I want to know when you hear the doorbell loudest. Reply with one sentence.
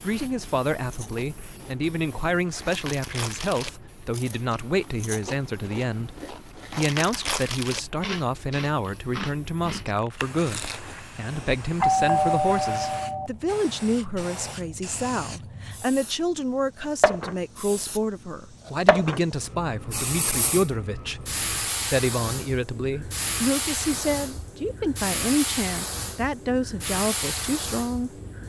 The volume of the doorbell peaks at 12 seconds.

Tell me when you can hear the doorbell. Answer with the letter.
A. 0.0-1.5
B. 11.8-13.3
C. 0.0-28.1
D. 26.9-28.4
B.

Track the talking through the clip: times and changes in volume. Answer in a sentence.
You can hear the talking from 0.0 to 28.1 s, at a steady volume.